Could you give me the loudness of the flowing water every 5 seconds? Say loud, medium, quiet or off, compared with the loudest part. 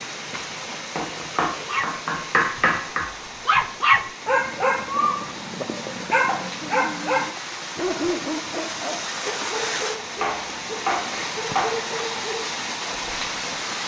medium, loud, loud.